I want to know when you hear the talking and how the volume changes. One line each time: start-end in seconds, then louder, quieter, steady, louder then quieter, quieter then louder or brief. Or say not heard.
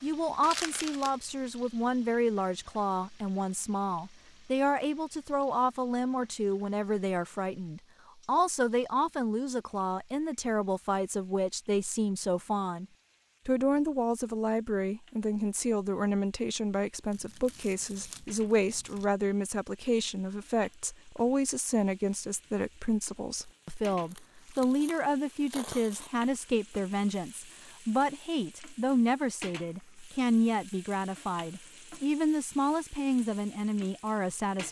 0.0-12.8 steady
13.4-34.6 steady.